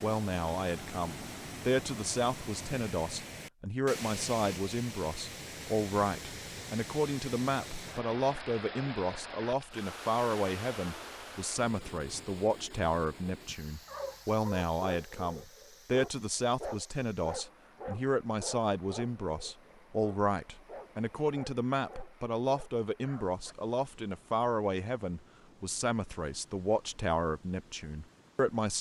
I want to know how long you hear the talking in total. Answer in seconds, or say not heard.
29 s.